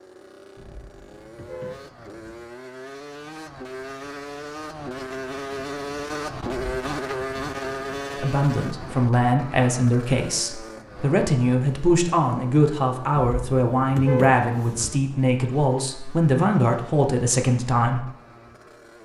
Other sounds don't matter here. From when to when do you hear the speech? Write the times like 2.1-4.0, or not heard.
8.2-18.1.